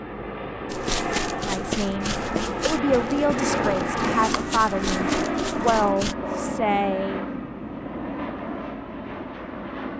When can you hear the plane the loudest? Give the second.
4 s.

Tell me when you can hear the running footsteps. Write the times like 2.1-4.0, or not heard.
0.7-6.2.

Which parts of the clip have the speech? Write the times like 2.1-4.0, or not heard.
1.4-7.3.